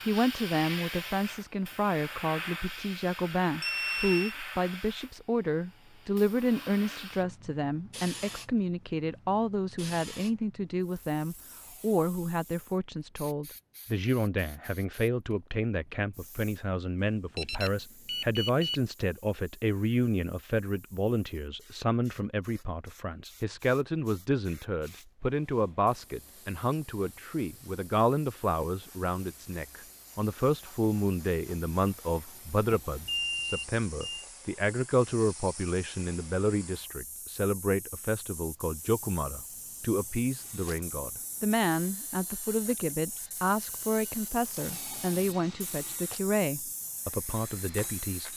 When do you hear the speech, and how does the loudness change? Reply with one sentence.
The speech can be heard from 0.1 to 48.3 s, at a steady volume.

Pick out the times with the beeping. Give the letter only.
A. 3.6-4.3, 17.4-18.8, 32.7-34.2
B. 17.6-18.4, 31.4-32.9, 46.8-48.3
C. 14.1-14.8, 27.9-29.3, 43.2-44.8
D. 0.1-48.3
A.